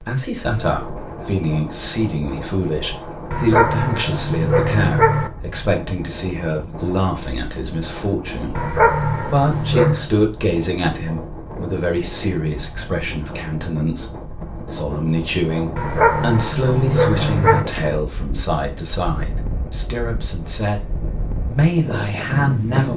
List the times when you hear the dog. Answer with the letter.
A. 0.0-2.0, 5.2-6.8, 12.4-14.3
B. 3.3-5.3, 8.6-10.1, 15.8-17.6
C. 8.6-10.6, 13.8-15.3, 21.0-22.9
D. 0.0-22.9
B.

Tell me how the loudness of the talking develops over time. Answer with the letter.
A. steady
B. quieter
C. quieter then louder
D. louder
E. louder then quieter
A.